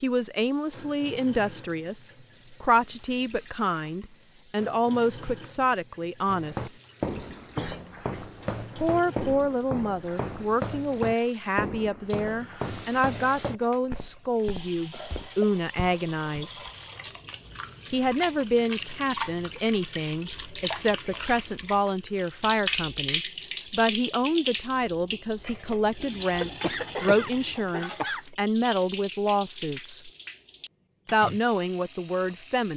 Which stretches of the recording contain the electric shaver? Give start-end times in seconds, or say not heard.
not heard.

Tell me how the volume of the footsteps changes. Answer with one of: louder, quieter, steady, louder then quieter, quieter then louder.
quieter.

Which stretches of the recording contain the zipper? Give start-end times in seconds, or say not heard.
not heard.